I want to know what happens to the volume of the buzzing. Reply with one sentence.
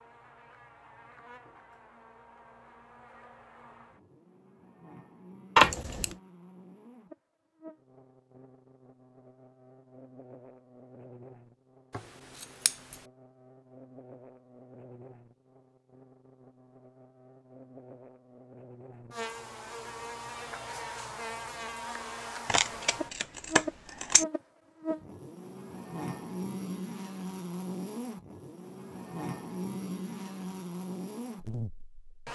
The volume of the buzzing goes up.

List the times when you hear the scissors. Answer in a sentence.
The scissors can be heard from 5.5 to 6.2 s, from 11.9 to 12.9 s and from 22.4 to 24.2 s.